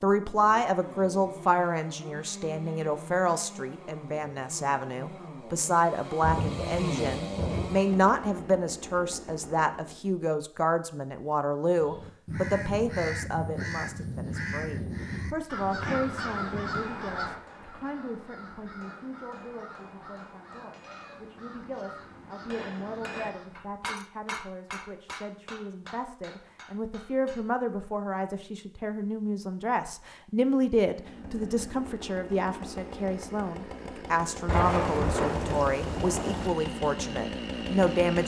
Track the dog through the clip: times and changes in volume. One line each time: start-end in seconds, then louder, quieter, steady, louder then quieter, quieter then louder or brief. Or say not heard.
not heard.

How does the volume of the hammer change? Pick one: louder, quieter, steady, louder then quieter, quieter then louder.
louder then quieter.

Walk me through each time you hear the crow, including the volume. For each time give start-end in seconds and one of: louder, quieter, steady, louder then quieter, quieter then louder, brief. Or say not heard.
11.8-23.7 quieter.